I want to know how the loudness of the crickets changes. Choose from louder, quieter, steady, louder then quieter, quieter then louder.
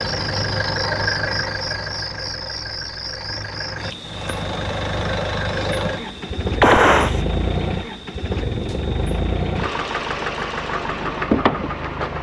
quieter.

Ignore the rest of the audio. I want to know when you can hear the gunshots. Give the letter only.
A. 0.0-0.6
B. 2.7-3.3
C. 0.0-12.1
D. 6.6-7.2
D.